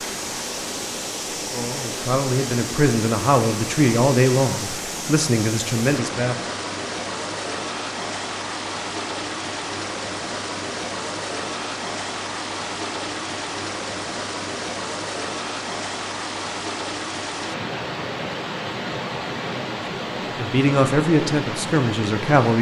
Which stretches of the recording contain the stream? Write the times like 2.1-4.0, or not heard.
0.0-22.5.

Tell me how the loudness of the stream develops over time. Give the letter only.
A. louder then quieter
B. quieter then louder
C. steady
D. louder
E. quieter
C.